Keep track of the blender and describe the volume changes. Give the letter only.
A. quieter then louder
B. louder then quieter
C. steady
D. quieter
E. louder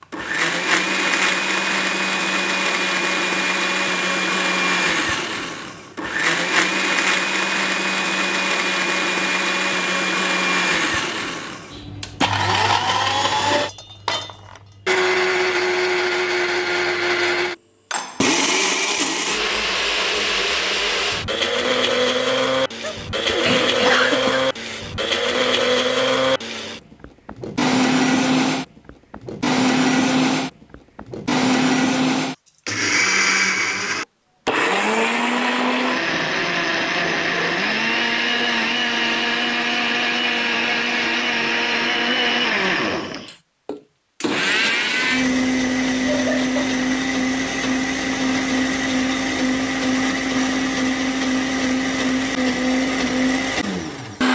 C.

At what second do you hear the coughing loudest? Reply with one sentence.
The loudest moment of the coughing is at 24 seconds.